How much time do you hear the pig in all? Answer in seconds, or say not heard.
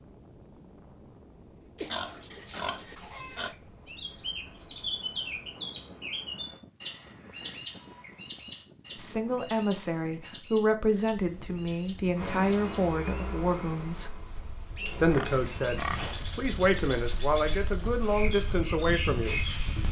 3 s.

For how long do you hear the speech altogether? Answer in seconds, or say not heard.
10 s.